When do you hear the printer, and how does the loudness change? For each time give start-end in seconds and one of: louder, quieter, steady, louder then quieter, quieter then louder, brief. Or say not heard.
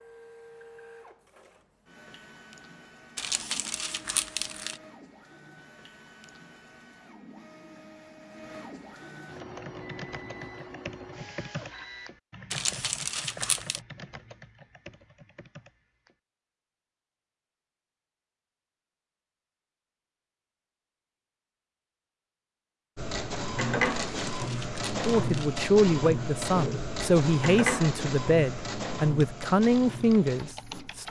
0.0-12.1 louder
22.9-31.0 quieter.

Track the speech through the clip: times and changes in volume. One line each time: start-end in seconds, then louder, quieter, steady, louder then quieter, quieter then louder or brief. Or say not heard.
25.1-31.0 steady.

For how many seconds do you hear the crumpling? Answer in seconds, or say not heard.
5 s.